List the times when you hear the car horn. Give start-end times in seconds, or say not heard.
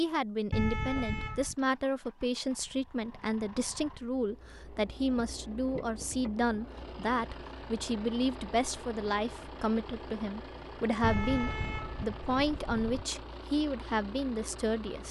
0.5-1.6, 11.0-13.1.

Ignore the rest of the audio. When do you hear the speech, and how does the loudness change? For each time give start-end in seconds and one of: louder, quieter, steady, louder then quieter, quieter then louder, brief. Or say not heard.
0.0-15.0 steady.